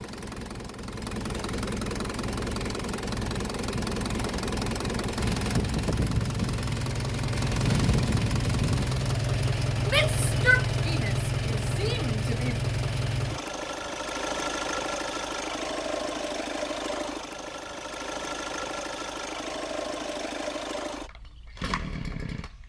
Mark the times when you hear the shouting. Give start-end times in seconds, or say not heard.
9.8-12.6.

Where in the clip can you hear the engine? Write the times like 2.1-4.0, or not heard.
0.0-22.6.